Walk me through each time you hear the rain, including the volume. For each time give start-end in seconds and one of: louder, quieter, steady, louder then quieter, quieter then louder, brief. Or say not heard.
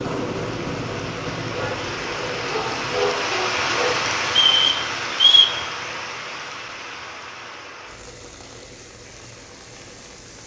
0.0-10.4 louder then quieter.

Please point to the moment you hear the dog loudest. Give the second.
3 s.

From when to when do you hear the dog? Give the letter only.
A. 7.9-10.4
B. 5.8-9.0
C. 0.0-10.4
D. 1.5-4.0
D.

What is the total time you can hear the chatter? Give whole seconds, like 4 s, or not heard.
not heard.